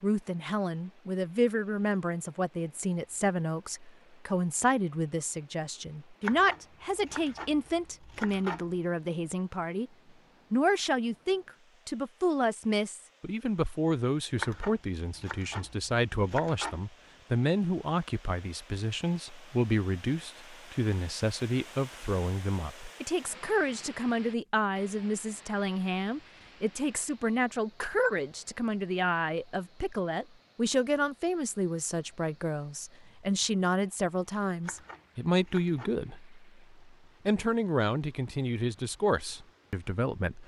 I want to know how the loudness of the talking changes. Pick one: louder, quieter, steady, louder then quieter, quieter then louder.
steady.